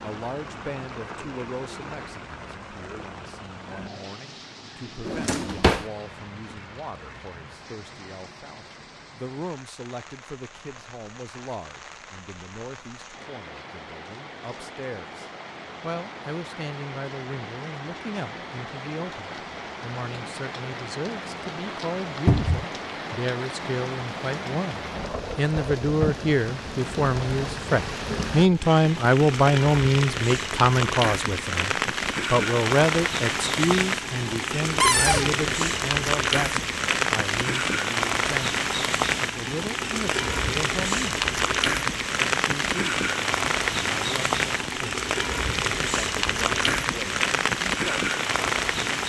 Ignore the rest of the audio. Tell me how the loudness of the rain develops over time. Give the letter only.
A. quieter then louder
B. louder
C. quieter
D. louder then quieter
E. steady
B.